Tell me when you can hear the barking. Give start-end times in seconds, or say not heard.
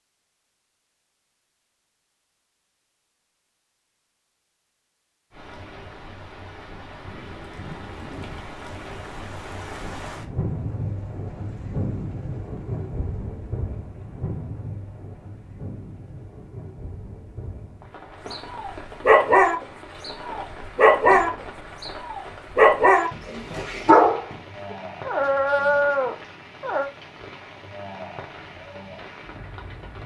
18.3-24.4, 25.1-26.9.